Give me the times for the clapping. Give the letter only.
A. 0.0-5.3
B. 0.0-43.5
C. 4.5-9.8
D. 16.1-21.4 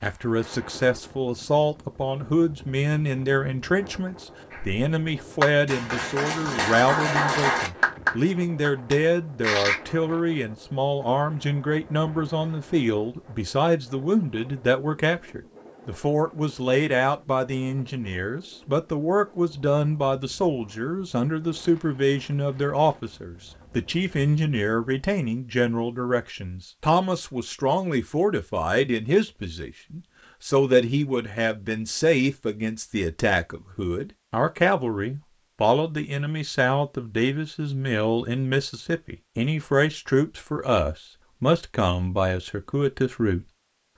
C.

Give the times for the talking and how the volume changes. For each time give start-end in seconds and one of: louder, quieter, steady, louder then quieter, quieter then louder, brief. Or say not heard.
0.0-43.5 steady.